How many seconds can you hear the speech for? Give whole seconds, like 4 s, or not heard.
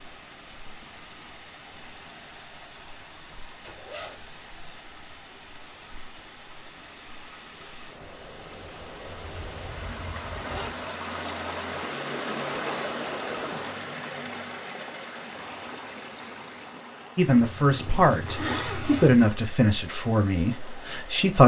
4 s.